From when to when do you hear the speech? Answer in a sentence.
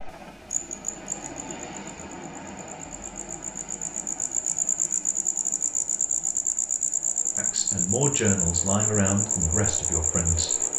You can hear the speech from 7.3 to 10.6 s.